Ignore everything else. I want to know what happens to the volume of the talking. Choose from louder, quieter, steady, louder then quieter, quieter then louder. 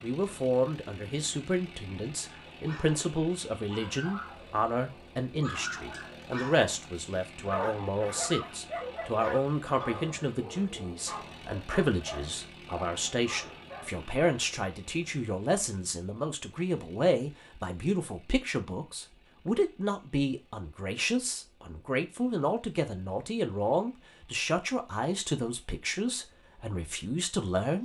steady.